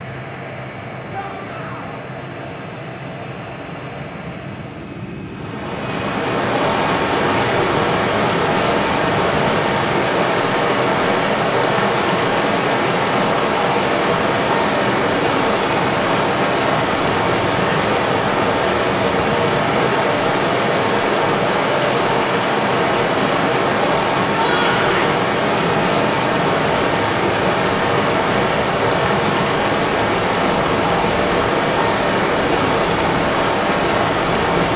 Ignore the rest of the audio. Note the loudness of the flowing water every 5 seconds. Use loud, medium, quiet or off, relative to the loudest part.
off, loud, loud, loud, loud, loud, loud.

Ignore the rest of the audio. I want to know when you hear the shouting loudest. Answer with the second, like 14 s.
25 s.